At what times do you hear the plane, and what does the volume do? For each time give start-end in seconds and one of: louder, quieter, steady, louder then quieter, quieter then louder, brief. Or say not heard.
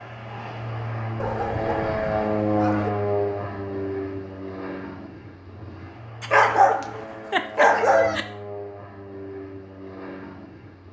0.0-10.8 quieter.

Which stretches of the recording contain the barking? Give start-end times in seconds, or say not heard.
1.2-2.9, 6.2-8.2.